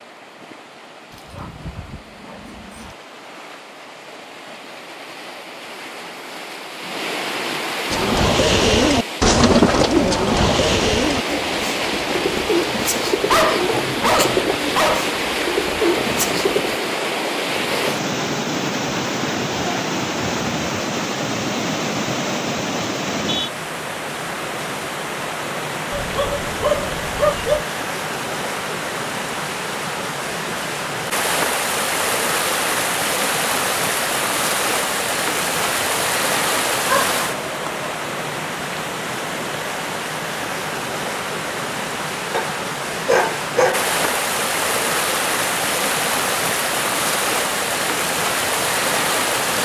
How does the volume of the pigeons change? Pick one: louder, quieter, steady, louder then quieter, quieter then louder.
quieter.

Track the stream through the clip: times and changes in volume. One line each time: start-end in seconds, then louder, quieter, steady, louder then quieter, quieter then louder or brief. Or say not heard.
0.0-49.6 louder.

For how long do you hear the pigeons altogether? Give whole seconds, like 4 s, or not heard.
9 s.